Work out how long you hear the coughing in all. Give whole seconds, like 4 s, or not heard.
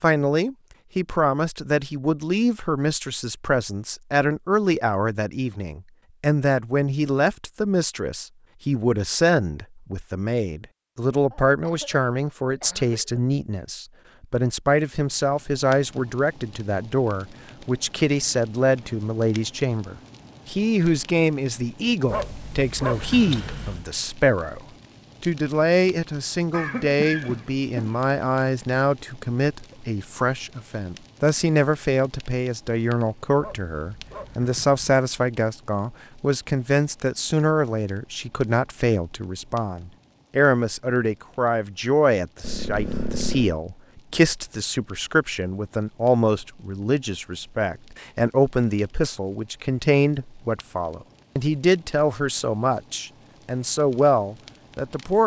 5 s.